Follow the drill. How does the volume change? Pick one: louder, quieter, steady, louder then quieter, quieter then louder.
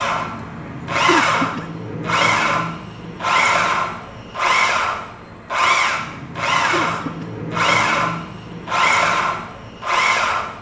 steady.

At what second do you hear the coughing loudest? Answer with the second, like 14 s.
1 s.